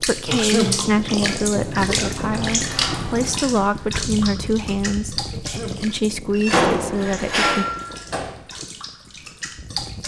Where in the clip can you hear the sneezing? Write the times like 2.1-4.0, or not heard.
0.2-0.9, 5.3-5.8.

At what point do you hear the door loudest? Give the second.
7 s.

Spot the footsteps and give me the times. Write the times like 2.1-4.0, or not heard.
not heard.